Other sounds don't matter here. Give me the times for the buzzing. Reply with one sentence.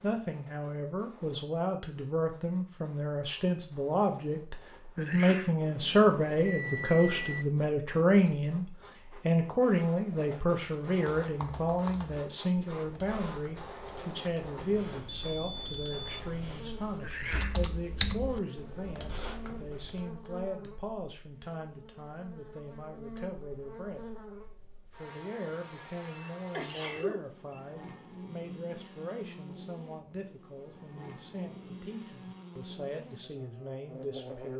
You can hear the buzzing from 16.5 to 34.5 s.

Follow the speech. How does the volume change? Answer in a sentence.
The volume of the speech goes down.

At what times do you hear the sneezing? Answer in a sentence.
The sneezing can be heard from 5.0 to 5.5 s, from 17.0 to 17.6 s and from 26.5 to 27.2 s.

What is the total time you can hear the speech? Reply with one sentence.
You can hear the speech for 34 seconds altogether.